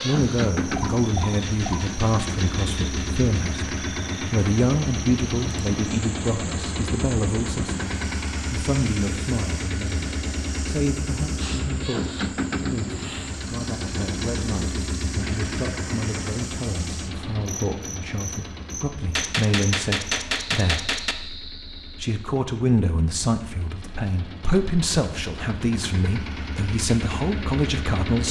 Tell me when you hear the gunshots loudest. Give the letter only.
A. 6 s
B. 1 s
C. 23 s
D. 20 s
D.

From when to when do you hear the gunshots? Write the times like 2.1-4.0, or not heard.
1.4-3.4, 19.1-21.1.